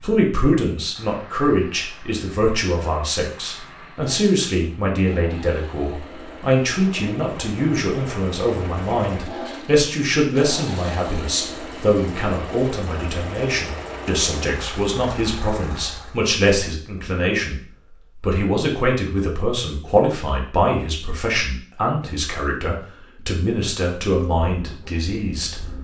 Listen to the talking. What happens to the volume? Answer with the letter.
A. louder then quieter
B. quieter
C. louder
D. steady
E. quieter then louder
D.